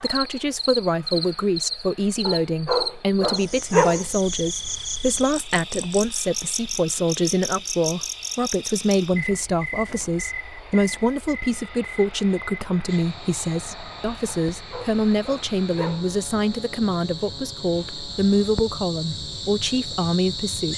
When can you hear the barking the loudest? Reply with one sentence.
The loudest moment of the barking is at 4 seconds.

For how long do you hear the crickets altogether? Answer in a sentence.
The crickets can be heard for 21 seconds in total.